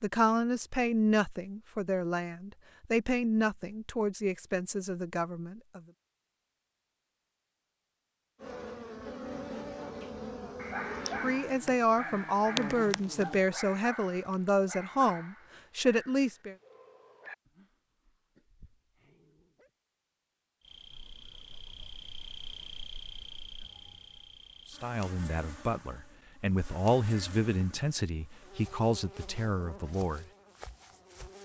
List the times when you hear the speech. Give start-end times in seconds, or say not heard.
0.0-5.8, 11.2-16.6, 24.7-30.2.